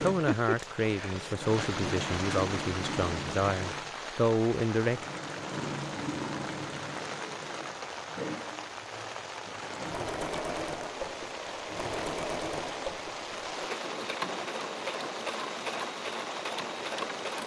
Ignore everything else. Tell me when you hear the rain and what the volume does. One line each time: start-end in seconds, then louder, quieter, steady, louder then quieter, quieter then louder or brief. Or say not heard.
0.0-17.4 steady.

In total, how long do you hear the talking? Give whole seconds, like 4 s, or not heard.
5 s.